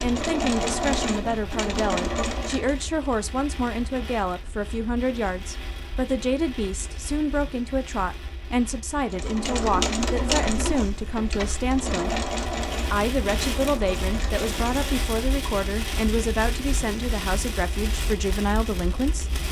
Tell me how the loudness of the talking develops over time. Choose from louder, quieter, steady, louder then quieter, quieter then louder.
steady.